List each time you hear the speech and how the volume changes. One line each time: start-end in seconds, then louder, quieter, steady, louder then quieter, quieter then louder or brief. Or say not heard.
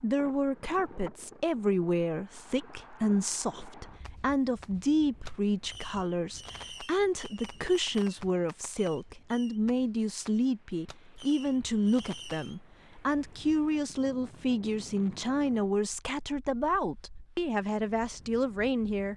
0.0-19.1 steady.